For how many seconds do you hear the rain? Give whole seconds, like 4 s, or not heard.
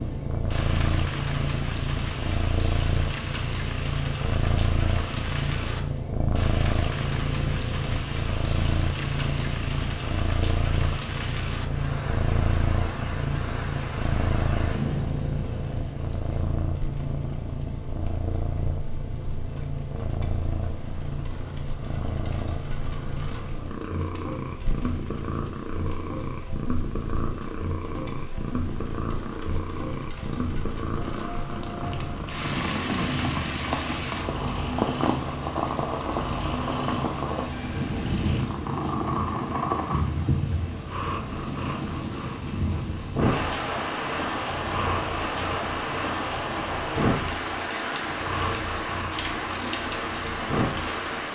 51 s.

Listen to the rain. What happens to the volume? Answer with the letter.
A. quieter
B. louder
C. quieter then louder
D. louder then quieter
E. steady
C.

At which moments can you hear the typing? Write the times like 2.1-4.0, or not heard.
not heard.